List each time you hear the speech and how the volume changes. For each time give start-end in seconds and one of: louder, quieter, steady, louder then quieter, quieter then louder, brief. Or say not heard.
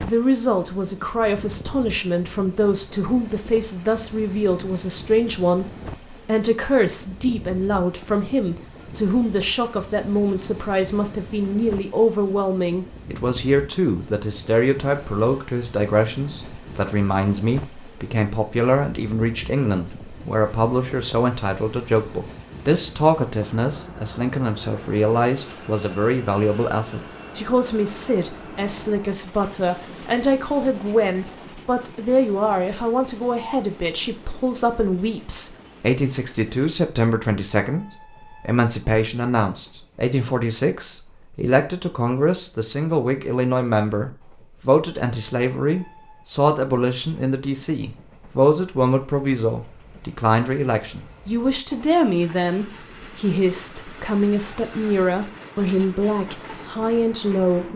0.0-57.7 steady.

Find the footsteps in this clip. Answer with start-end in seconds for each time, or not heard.
not heard.